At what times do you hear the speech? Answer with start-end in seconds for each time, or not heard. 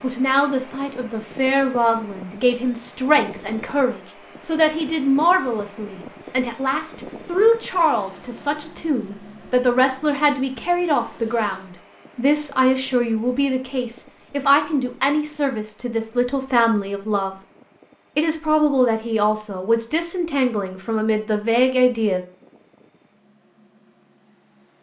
0.0-17.4, 18.1-22.2.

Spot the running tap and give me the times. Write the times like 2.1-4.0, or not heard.
not heard.